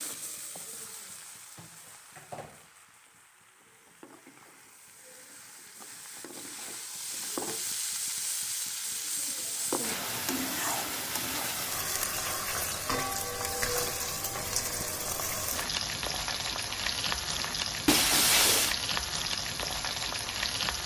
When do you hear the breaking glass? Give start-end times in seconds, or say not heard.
17.9-18.8.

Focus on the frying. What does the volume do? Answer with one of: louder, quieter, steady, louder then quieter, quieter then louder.
louder.